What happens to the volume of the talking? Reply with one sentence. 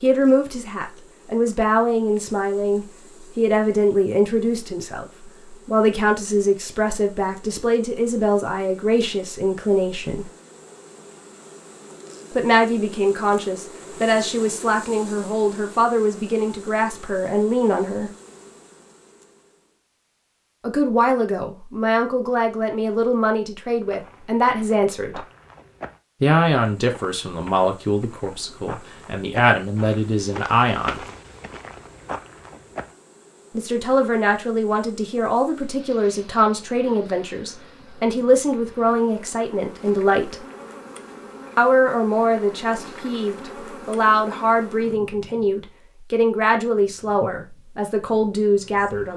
The loudness of the talking stays about the same.